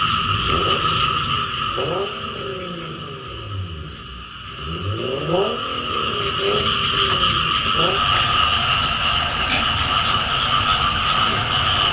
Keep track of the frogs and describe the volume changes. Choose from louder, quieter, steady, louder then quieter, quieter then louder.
quieter then louder.